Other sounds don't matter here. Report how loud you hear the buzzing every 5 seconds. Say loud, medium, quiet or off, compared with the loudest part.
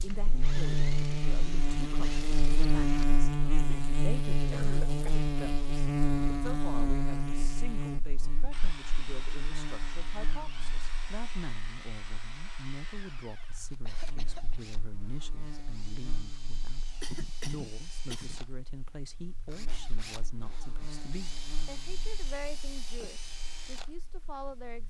loud, loud, quiet, quiet, quiet.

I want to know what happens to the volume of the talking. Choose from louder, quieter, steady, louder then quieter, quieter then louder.
steady.